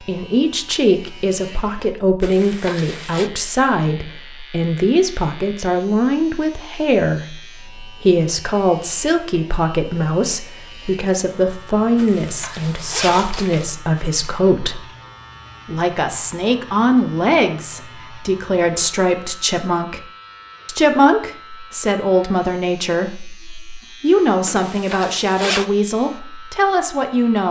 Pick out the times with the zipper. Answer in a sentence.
The zipper can be heard from 2.2 to 3.3 s, from 11.9 to 13.7 s and from 24.4 to 25.6 s.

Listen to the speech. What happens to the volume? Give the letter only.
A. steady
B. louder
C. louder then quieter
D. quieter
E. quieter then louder
A.